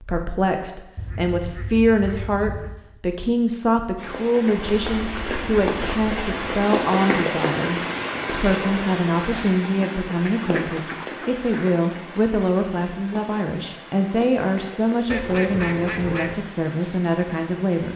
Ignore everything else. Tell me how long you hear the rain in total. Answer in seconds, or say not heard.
14 s.